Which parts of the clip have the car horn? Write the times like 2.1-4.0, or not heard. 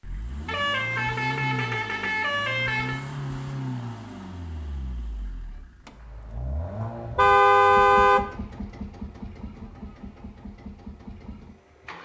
0.5-3.0, 7.2-8.2.